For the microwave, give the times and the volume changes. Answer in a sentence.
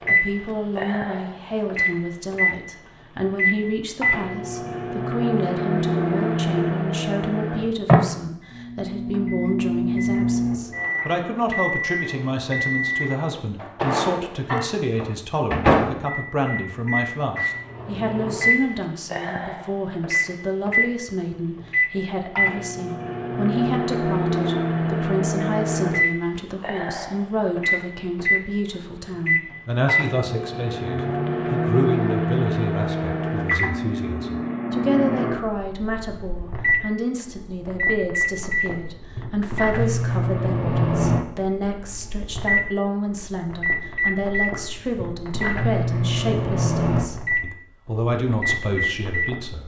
The microwave can be heard from 0.0 to 49.6 s, at a steady volume.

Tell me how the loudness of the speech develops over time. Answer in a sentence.
The loudness of the speech stays about the same.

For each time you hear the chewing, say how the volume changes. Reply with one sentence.
You can't hear the chewing here.